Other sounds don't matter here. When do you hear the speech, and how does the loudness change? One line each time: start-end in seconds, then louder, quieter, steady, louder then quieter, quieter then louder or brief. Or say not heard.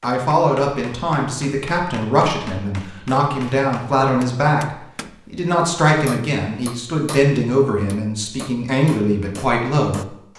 0.0-10.2 steady.